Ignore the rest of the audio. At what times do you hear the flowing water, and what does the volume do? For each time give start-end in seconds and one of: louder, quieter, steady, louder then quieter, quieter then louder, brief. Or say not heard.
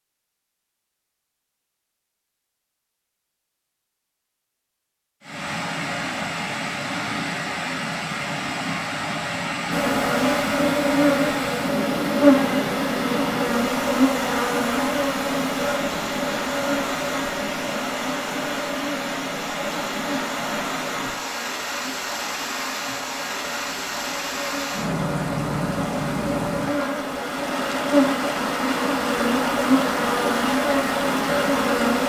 5.2-32.0 steady.